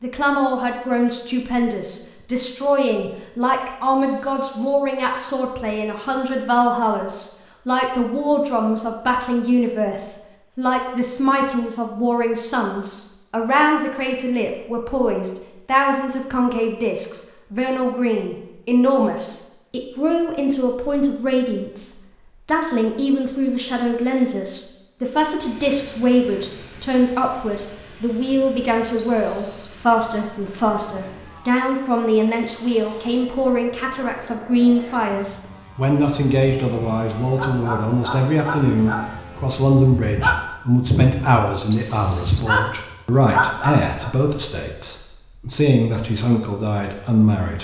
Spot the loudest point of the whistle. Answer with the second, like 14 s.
42 s.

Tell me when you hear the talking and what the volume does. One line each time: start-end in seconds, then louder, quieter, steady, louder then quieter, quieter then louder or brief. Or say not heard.
0.0-47.5 steady.